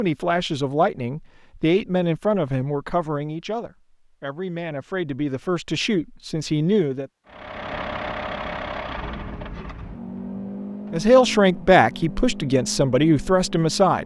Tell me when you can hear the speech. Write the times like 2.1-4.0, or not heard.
0.0-7.1, 10.9-14.0.